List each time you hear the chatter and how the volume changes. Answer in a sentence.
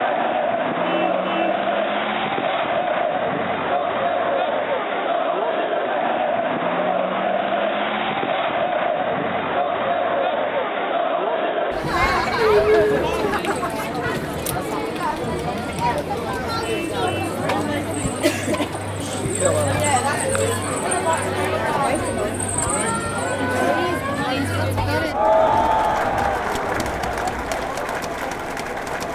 You can hear the chatter from 0.0 to 29.1 s, at a steady volume.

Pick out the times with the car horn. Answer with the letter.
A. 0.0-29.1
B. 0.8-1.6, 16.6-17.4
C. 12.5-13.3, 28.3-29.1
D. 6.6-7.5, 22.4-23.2
B.